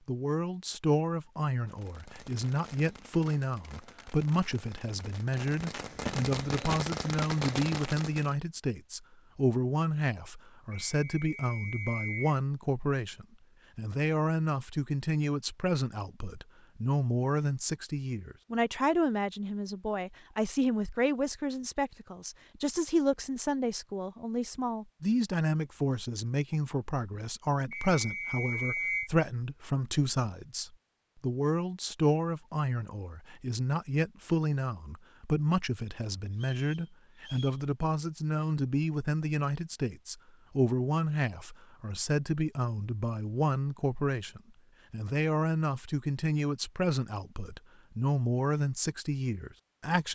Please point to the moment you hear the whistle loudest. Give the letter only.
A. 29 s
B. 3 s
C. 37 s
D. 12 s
A.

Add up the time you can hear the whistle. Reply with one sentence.
The whistle can be heard for 4 seconds in total.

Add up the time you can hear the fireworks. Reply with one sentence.
You can hear the fireworks for 7 seconds altogether.